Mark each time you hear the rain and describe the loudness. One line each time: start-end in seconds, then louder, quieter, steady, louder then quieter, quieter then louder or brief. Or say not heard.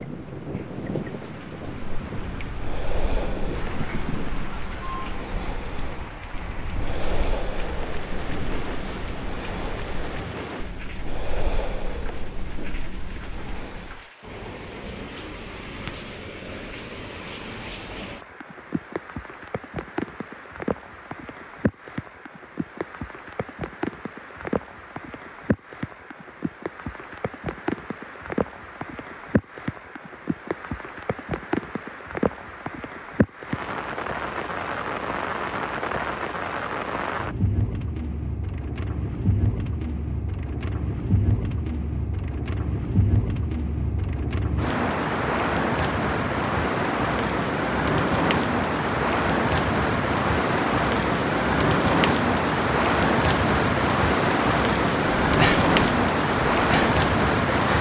0.0-57.7 louder.